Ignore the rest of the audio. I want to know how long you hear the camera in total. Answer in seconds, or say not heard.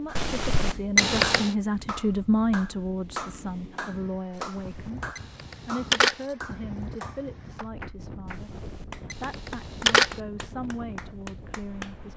4 s.